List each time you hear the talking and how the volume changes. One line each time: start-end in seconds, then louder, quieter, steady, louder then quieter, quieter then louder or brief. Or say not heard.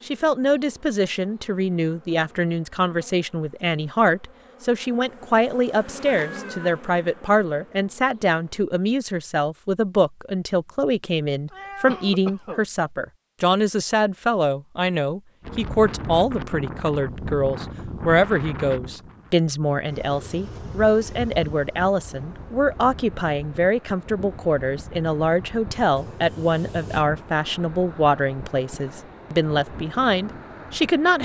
0.1-31.2 steady.